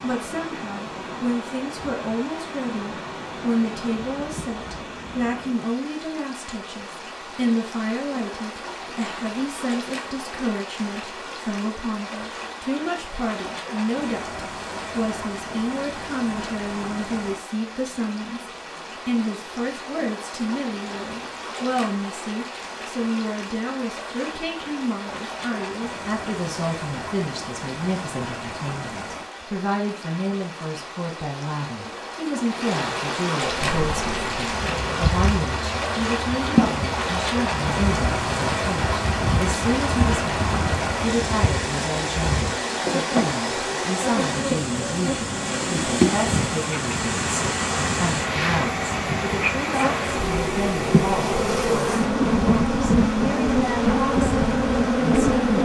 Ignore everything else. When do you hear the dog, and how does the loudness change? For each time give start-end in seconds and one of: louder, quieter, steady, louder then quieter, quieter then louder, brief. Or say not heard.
not heard.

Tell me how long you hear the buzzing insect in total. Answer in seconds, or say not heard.
22 s.